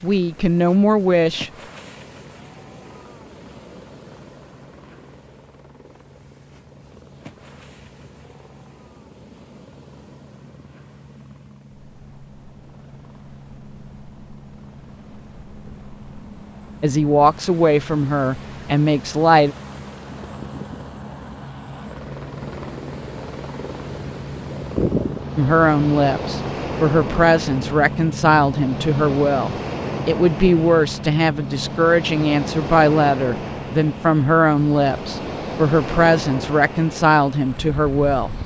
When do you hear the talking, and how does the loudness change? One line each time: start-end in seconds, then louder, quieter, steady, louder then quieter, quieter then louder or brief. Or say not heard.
0.0-1.5 brief
16.8-19.6 brief
25.4-38.4 steady.